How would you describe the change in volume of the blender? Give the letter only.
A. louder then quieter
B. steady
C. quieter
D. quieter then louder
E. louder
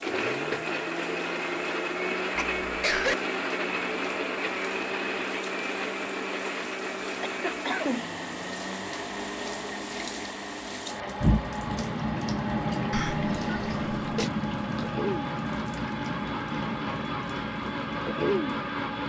D.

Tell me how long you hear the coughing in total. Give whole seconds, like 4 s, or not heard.
3 s.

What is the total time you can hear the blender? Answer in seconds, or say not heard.
19 s.